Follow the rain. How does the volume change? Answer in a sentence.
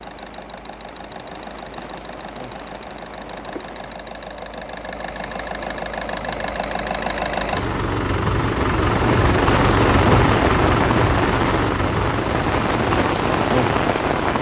The loudness of the rain goes up.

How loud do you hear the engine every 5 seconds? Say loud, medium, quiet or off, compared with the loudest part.
quiet, loud, loud.